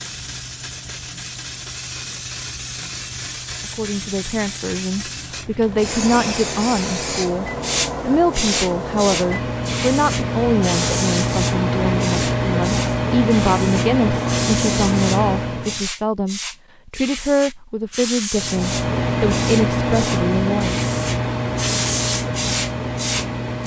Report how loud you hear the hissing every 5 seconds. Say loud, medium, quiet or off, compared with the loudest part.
medium, loud, loud, loud, loud.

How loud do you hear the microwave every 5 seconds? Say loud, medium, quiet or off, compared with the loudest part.
off, medium, loud, loud, loud.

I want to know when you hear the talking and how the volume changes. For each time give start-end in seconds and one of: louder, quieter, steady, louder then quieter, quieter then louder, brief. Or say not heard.
3.8-20.9 steady.